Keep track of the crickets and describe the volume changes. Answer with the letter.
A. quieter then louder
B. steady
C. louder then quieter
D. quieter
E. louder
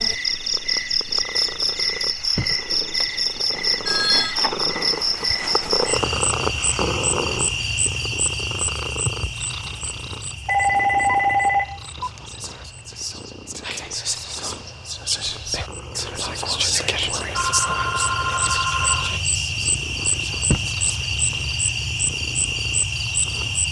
A.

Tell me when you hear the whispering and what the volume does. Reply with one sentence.
The whispering can be heard from 12.0 to 21.1 s, getting louder then quieter.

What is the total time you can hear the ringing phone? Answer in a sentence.
You can hear the ringing phone for 5 seconds altogether.